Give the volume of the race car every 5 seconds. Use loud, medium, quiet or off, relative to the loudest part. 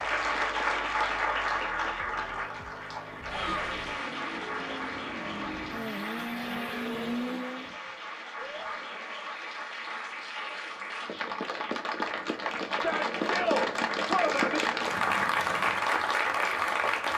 medium, loud, off, off.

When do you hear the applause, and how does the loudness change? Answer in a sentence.
You can hear the applause from 0.0 to 17.1 s, getting quieter then louder.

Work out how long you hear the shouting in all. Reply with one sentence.
You can hear the shouting for 3 seconds altogether.